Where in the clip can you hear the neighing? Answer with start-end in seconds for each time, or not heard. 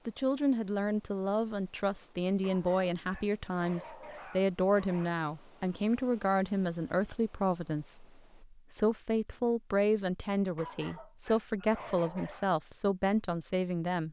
not heard.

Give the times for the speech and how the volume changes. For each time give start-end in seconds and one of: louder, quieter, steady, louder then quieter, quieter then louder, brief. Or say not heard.
0.1-14.0 steady.